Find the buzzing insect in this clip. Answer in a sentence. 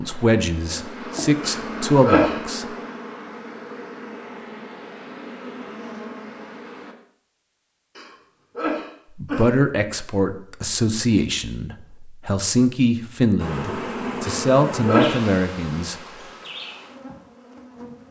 The buzzing insect can be heard from 0.0 to 7.0 s and from 13.3 to 18.0 s.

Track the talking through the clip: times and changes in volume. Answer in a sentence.
The talking can be heard briefly from 0.0 to 2.6 s; and from 9.2 to 15.9 s, at a steady volume.